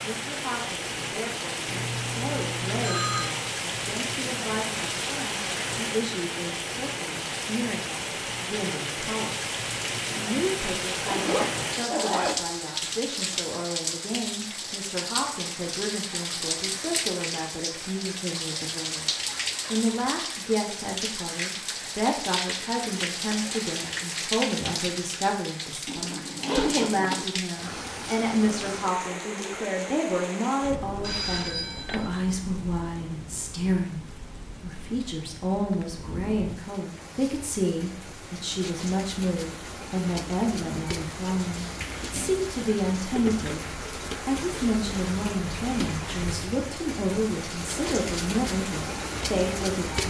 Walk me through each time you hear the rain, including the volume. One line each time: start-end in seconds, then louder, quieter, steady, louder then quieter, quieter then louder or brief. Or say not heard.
0.0-50.0 quieter then louder.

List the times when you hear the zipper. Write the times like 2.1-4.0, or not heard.
11.1-12.4, 25.9-27.2, 38.5-38.9.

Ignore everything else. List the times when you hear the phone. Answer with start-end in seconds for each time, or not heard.
1.6-3.4, 31.0-32.2.